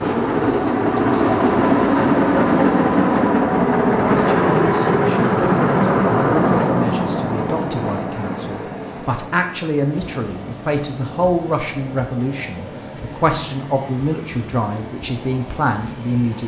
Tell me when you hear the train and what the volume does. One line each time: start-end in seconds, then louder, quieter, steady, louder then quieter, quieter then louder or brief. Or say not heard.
0.0-16.4 quieter.